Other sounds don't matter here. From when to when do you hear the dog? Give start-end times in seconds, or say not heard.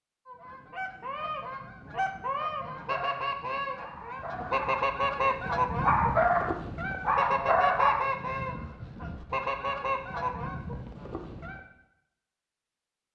2.8-8.1.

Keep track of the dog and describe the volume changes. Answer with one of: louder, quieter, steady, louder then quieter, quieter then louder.
louder.